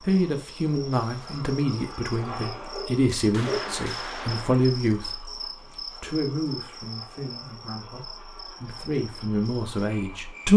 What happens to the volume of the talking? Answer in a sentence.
The volume of the talking goes down, then up.